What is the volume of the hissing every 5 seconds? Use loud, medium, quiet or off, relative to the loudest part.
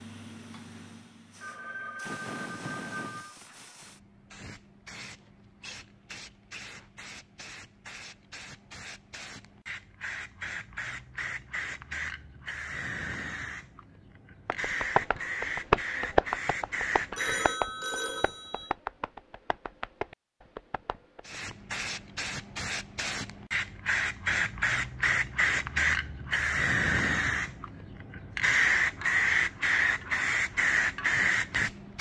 quiet, quiet, medium, medium, medium, loud, loud.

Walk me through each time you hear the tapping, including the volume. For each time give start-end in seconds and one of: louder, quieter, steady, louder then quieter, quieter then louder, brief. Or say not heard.
14.4-21.6 quieter.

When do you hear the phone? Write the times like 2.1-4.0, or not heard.
1.4-3.4, 17.1-18.8.